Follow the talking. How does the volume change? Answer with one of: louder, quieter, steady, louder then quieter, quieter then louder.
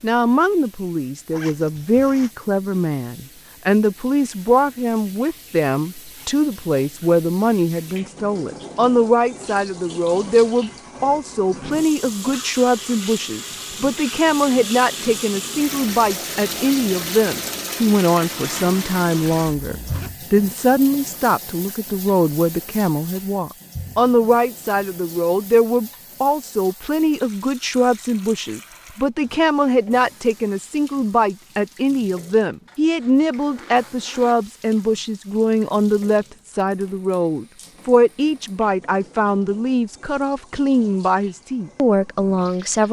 steady.